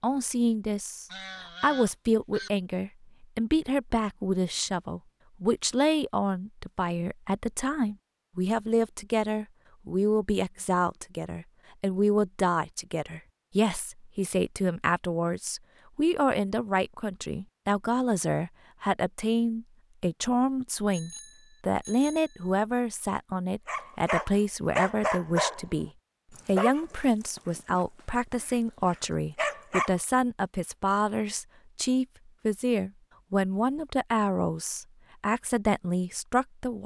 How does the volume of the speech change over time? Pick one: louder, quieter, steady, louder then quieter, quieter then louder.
steady.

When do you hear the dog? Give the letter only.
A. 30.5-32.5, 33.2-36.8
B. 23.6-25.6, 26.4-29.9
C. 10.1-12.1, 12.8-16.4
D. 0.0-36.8
B.